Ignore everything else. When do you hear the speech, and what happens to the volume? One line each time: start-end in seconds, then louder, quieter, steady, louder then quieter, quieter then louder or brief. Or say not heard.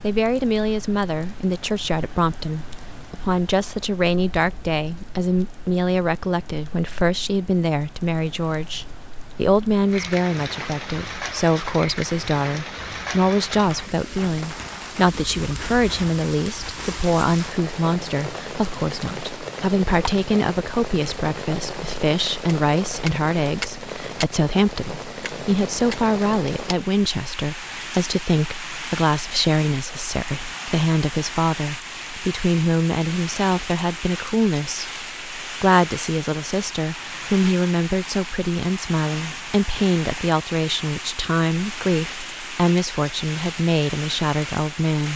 0.0-45.1 steady.